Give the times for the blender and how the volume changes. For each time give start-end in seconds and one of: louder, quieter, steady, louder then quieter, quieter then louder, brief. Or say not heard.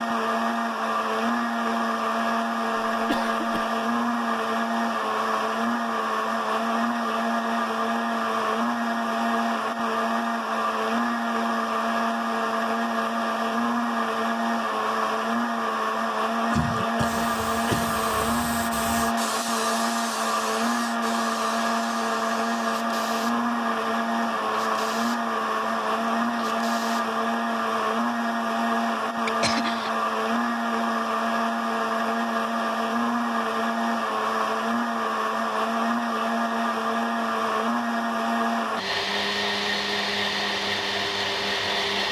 0.0-42.0 steady.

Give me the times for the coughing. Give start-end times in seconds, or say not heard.
2.9-3.7, 16.5-18.6, 29.2-29.9.